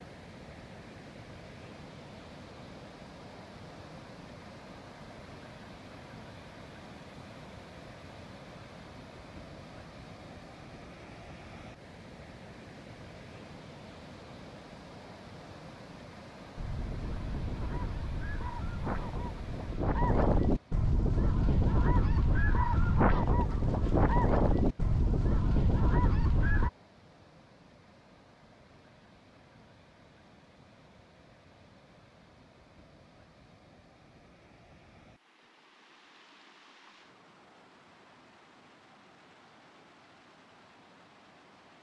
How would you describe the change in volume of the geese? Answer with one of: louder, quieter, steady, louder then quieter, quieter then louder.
louder.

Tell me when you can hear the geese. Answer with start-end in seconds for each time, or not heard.
16.6-26.7.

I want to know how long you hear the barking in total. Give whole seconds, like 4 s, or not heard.
not heard.